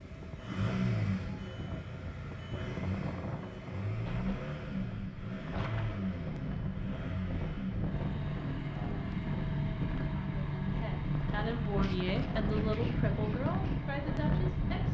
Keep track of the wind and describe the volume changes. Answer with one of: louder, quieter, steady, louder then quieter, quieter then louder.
louder.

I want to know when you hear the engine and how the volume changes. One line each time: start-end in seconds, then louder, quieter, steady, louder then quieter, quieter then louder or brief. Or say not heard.
0.0-14.9 steady.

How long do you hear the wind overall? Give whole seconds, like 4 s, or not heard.
15 s.